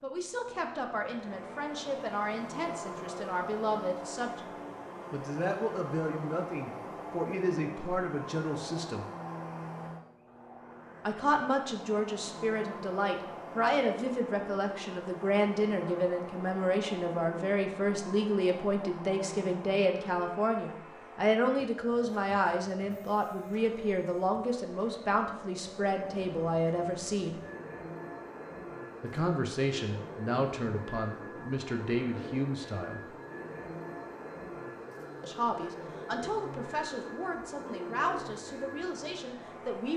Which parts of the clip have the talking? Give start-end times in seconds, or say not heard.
0.0-4.5, 5.1-9.1, 11.1-27.4, 29.0-33.0, 35.2-39.9.